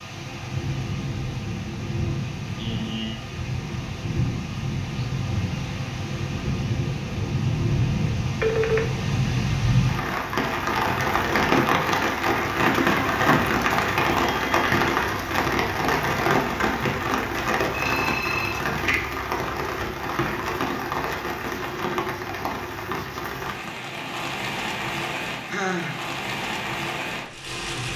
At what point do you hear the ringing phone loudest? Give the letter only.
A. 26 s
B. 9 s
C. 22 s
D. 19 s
B.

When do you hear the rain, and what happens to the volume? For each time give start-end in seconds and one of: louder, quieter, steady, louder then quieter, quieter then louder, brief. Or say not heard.
0.0-27.9 louder then quieter.